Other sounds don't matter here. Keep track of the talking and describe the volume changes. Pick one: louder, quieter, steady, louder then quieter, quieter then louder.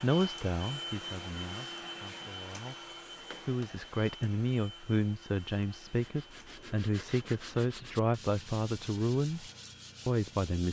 louder.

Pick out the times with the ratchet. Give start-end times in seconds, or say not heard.
not heard.